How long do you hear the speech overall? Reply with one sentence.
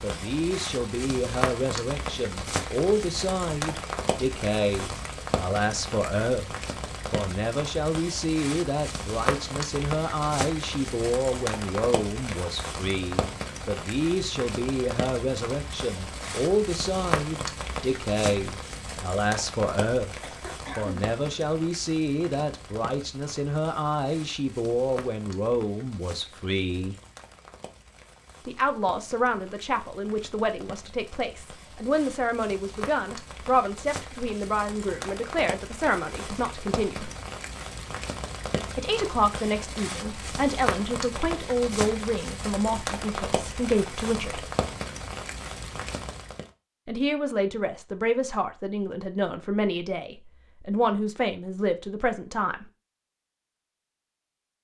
You can hear the speech for 47 seconds altogether.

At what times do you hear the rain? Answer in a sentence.
You can hear the rain from 0.0 to 46.5 s.